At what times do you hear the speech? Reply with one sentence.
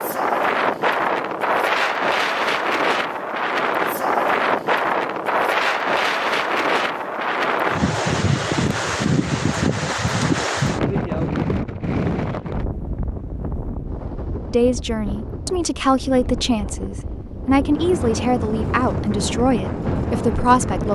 You can hear the speech from 14.5 to 20.8 s.